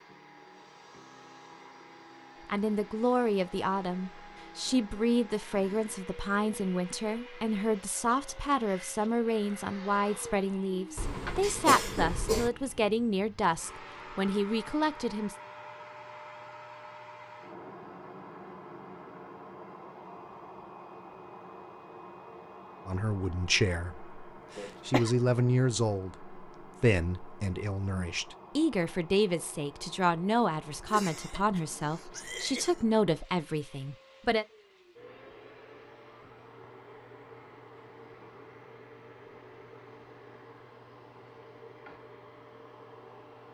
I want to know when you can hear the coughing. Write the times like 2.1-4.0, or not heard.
10.9-12.5, 24.6-25.1, 30.9-32.9.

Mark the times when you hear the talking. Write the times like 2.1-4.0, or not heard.
2.5-15.3, 22.9-34.5.